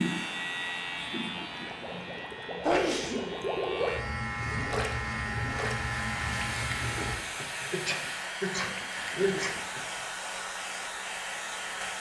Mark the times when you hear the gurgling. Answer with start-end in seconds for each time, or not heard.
1.5-10.1.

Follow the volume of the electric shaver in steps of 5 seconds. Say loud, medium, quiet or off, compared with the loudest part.
loud, loud, off.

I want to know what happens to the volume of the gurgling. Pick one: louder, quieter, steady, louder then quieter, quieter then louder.
louder then quieter.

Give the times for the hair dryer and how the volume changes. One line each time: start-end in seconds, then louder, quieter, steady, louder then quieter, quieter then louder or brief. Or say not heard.
0.0-11.9 louder.